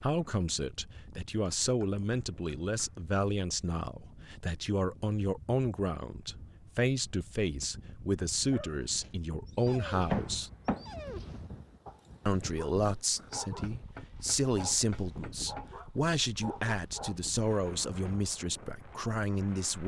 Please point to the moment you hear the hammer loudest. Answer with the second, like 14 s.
10 s.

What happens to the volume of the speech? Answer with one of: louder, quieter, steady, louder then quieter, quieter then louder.
steady.